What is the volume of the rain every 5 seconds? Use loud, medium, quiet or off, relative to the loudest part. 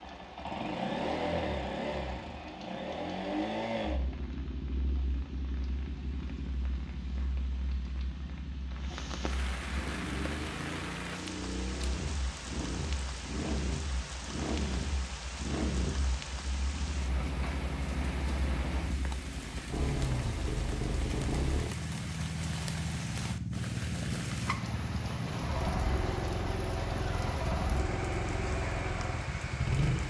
quiet, medium, loud, loud, loud, loud.